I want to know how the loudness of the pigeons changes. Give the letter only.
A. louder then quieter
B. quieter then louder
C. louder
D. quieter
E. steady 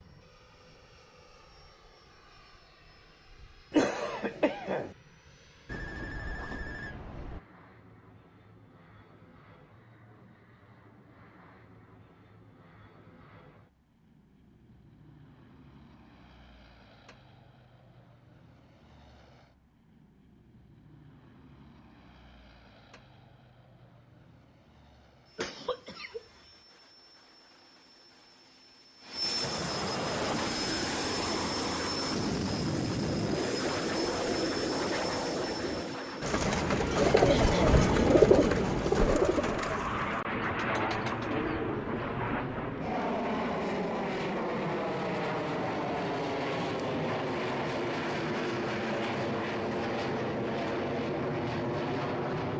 A.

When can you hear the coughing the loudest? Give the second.
4 s.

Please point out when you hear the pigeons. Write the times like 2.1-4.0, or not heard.
30.2-42.0.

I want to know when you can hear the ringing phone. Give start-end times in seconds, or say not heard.
5.7-7.4.